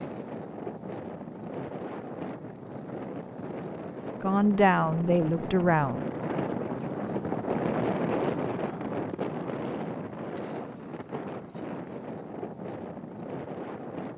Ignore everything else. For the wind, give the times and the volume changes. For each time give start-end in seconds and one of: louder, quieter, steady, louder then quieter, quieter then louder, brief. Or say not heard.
0.0-14.1 louder then quieter.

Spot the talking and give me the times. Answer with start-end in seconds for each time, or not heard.
4.2-6.0.